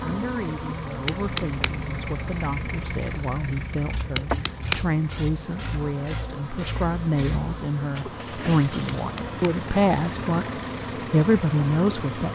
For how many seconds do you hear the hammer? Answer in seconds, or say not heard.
2 s.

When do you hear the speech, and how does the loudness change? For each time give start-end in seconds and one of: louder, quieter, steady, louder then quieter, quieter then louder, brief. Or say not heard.
0.0-12.3 louder.